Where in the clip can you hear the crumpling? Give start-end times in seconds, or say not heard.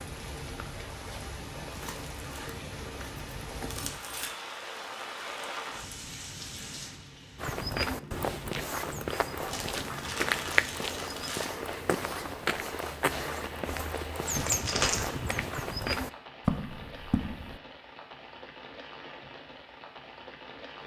1.6-4.3, 9.4-11.4, 14.3-15.1.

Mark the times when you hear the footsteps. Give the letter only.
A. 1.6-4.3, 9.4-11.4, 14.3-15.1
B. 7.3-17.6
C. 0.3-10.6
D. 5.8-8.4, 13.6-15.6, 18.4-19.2
B.